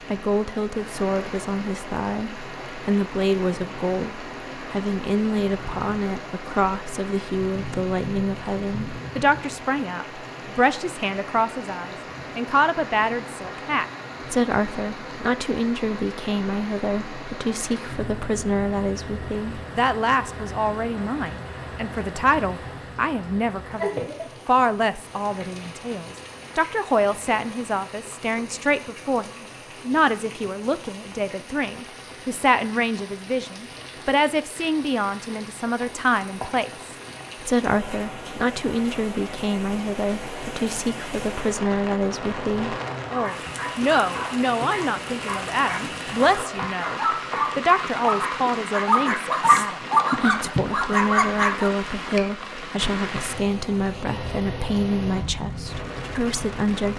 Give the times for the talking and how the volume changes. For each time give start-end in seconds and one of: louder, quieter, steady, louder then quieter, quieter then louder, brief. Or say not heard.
0.1-56.9 steady.